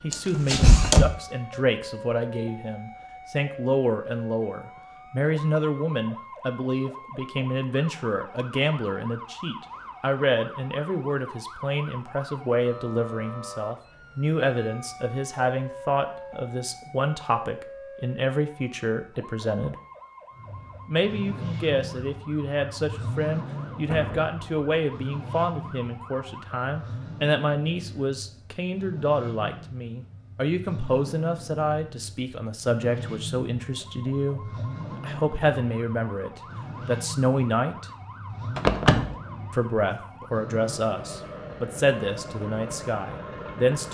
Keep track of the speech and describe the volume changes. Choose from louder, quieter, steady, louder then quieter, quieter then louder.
steady.